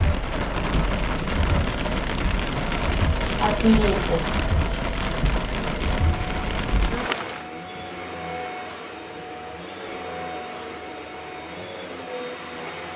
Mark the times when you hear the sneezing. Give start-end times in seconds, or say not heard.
3.4-4.2.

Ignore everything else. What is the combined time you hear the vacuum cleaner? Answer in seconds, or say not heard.
13 s.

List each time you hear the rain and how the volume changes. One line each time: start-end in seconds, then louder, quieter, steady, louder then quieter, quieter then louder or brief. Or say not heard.
0.0-7.5 steady.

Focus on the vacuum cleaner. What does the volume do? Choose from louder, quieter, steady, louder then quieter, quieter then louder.
steady.